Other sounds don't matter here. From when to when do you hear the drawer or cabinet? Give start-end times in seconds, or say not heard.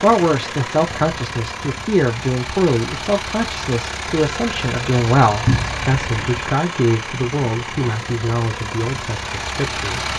5.5-5.9.